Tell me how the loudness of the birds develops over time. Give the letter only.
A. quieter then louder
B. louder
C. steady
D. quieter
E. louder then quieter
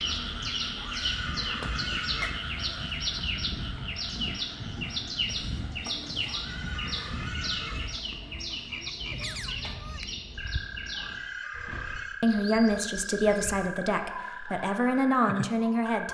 D.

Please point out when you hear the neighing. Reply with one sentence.
The neighing can be heard from 0.8 to 2.3 s, from 6.2 to 7.8 s and from 10.9 to 12.2 s.